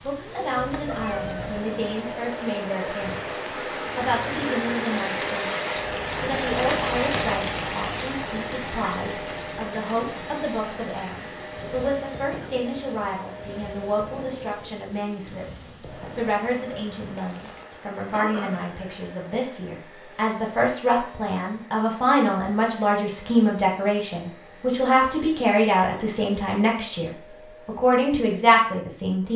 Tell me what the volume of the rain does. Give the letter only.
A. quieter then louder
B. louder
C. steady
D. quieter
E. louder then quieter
E.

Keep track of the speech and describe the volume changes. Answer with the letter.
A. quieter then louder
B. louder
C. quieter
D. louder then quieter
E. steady
B.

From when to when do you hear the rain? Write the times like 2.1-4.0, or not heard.
0.0-17.7.